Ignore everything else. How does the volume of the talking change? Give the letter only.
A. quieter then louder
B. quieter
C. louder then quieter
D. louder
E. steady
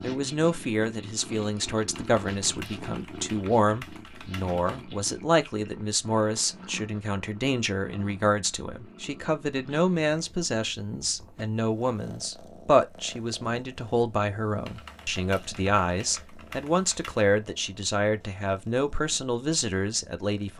E.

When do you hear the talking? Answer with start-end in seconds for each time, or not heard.
0.0-20.5.